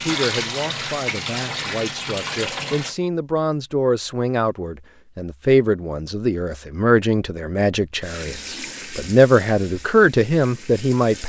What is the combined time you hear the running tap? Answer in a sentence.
The running tap can be heard for 6 seconds in total.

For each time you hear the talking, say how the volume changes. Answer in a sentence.
The talking can be heard from 0.0 to 11.2 s, getting louder.